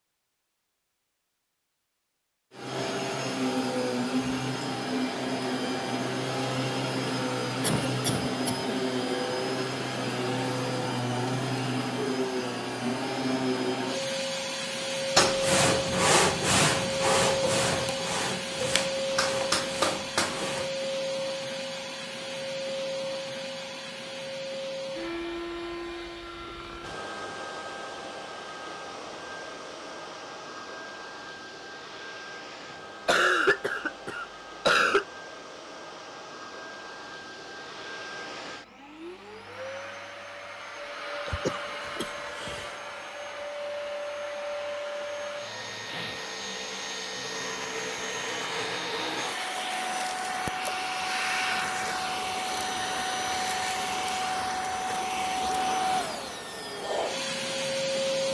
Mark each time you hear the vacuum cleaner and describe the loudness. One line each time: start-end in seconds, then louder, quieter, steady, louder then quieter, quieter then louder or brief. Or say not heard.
2.5-58.2 quieter then louder.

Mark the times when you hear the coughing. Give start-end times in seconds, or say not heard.
7.6-8.7, 33.0-35.0, 41.2-42.8.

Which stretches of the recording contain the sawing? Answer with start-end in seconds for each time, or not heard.
15.2-20.7.